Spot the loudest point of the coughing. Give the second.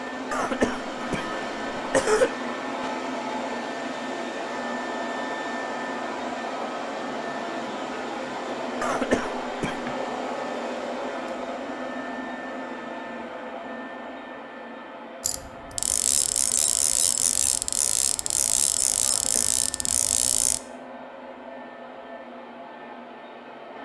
2 s.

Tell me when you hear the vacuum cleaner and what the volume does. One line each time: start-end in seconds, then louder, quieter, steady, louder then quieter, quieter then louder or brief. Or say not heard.
0.0-23.8 quieter.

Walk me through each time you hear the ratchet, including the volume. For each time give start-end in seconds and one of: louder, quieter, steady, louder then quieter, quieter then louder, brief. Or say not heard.
15.2-20.6 steady.